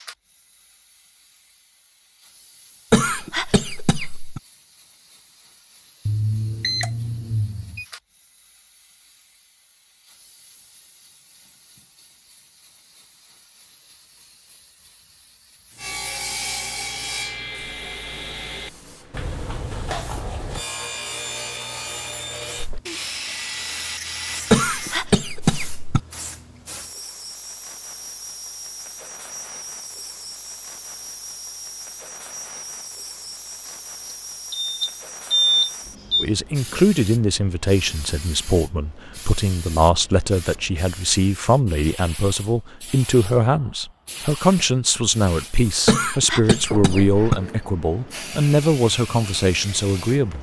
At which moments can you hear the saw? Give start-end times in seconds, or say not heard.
15.8-25.0.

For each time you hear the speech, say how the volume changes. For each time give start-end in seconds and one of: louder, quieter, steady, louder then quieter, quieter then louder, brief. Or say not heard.
36.2-50.3 steady.